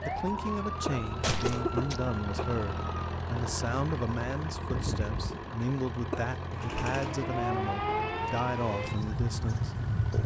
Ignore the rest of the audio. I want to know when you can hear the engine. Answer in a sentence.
You can hear the engine from 0.0 to 10.2 s.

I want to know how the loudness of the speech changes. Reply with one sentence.
The loudness of the speech stays about the same.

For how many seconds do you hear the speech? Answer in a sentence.
The speech can be heard for 10 seconds in total.